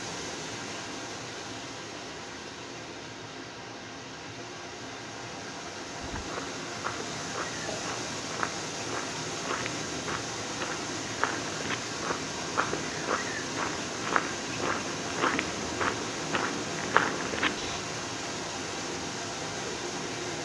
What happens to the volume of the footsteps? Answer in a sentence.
The loudness of the footsteps goes up.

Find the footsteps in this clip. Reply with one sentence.
The footsteps can be heard from 6.0 to 17.8 s.